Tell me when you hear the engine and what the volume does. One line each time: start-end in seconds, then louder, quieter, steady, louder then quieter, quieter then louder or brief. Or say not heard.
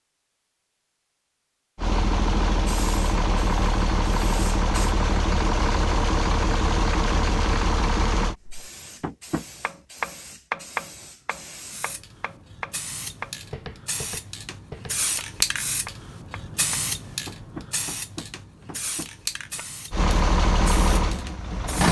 1.8-8.3 steady
19.9-21.8 brief.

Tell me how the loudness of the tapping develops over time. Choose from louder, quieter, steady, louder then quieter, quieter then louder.
quieter.